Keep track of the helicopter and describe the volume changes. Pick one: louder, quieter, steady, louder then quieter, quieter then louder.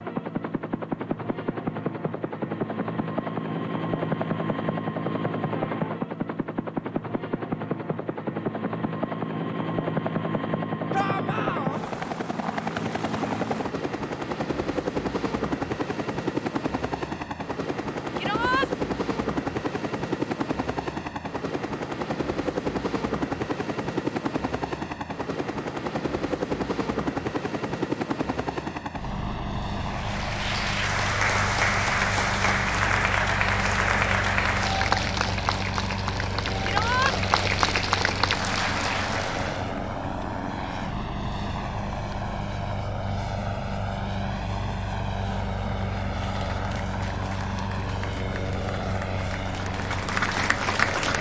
steady.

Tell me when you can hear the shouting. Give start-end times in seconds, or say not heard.
10.9-11.8, 18.1-18.7, 36.6-37.1.